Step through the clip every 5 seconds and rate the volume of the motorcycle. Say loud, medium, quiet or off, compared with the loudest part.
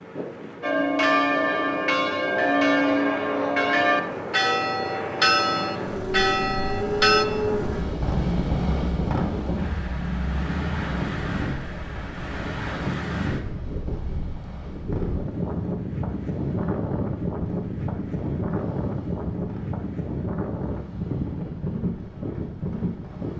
medium, loud, medium, quiet, quiet.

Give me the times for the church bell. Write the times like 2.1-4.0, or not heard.
0.6-7.2.